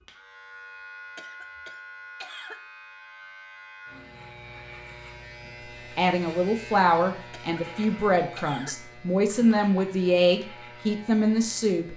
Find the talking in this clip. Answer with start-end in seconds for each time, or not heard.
6.0-11.9.